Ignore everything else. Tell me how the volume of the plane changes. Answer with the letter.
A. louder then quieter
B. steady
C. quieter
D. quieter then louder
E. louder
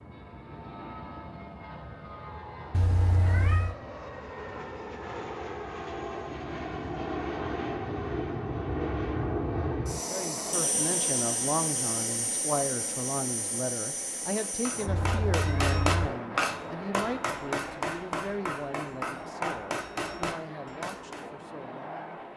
A.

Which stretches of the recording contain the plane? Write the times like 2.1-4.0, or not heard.
0.0-22.3.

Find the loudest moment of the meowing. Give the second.
3 s.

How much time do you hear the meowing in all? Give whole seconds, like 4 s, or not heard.
2 s.